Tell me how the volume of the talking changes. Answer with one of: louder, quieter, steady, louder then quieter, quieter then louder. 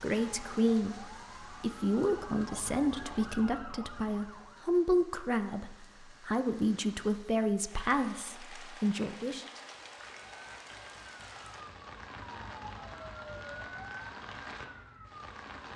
steady.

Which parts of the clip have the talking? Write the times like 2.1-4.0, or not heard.
0.0-9.4.